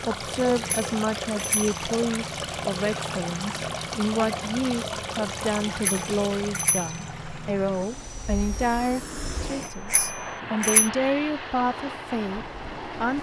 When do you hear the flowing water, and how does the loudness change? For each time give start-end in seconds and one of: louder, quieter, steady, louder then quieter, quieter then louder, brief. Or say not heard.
0.0-13.1 quieter.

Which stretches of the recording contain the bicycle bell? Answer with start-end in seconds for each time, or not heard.
0.7-1.8, 5.8-7.0, 9.6-10.9.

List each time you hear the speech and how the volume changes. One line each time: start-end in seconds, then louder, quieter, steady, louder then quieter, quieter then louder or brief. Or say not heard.
0.0-13.1 steady.